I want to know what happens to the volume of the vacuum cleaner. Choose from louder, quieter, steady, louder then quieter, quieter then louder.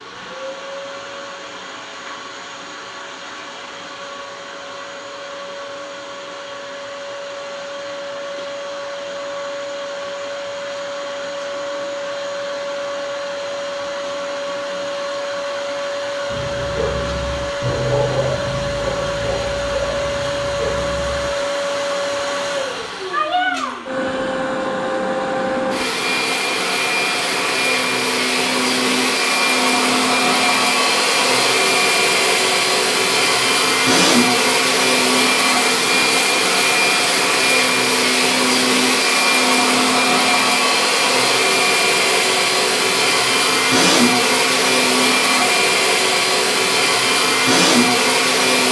louder.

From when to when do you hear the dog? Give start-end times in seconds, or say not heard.
16.2-21.3.